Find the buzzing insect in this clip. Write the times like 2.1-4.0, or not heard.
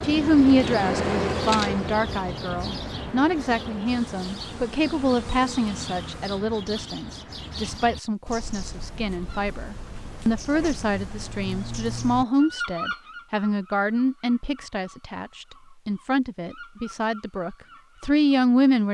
0.0-6.4.